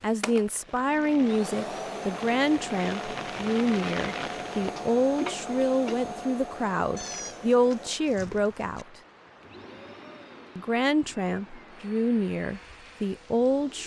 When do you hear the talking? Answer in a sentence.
You can hear the talking from 0.0 to 8.8 s and from 10.6 to 13.8 s.